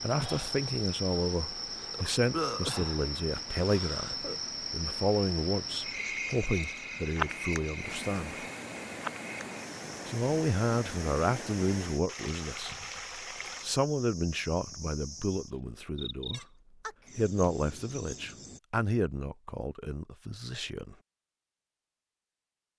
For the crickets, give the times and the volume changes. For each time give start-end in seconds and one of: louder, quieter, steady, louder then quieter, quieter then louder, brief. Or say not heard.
0.0-18.6 quieter.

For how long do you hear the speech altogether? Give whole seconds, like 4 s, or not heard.
18 s.